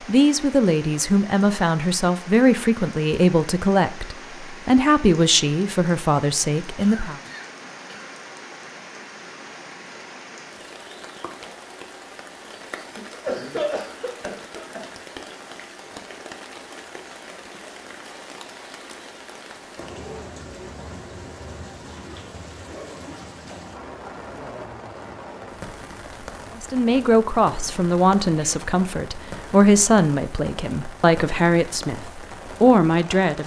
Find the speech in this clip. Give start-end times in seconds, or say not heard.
0.1-7.2, 26.6-33.4.